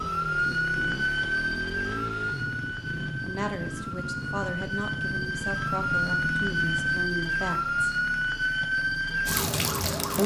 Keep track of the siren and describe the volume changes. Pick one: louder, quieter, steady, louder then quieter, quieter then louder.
quieter then louder.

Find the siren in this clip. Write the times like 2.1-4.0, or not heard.
0.0-10.2.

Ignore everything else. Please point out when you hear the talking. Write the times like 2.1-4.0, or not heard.
3.2-7.7.